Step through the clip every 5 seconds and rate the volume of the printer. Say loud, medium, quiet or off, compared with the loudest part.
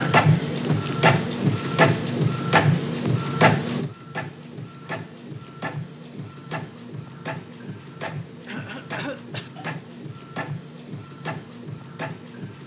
loud, quiet, quiet.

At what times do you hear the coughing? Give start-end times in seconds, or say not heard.
8.4-9.5.